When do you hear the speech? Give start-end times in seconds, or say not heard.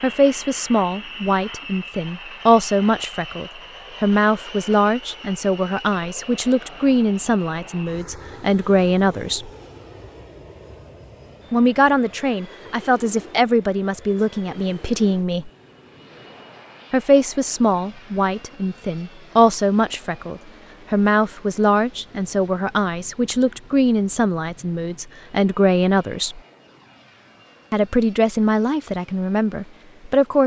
0.0-9.5, 11.5-15.5, 16.9-26.4, 27.7-30.4.